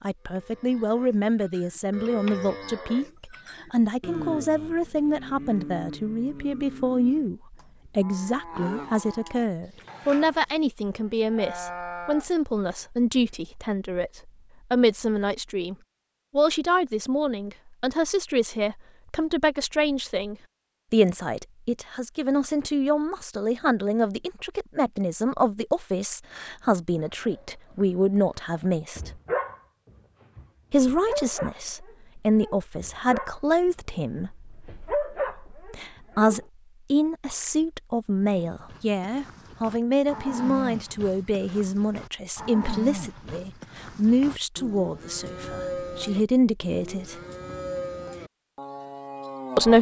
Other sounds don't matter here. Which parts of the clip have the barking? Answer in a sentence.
The barking can be heard from 27.2 to 29.6 s and from 30.4 to 36.4 s.